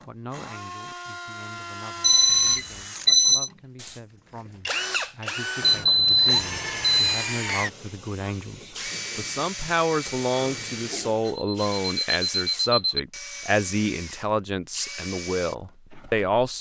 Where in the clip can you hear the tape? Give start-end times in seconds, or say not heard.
not heard.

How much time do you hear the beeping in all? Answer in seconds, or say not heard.
5 s.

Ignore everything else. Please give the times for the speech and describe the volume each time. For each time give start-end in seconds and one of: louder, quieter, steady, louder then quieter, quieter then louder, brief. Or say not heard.
0.1-16.5 louder.